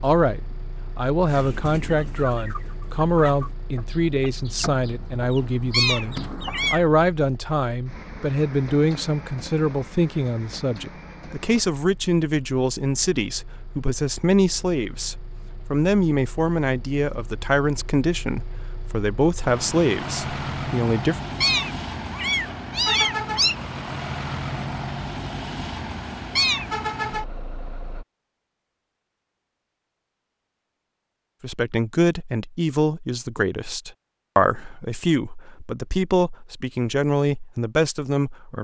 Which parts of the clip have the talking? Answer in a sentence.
The talking can be heard from 0.0 to 21.1 s and from 31.4 to 38.5 s.